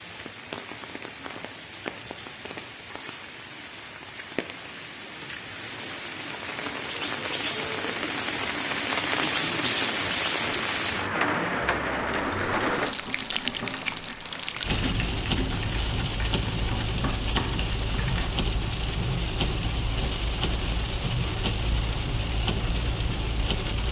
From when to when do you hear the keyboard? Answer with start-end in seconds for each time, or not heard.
11.9-18.3.